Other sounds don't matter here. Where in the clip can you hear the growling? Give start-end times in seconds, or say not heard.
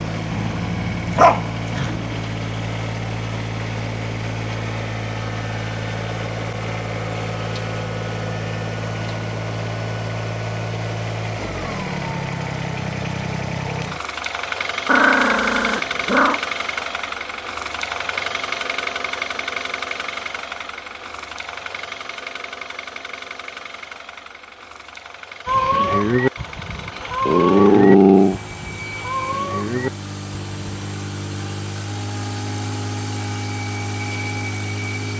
0.3-1.9, 14.8-16.4, 27.2-28.4.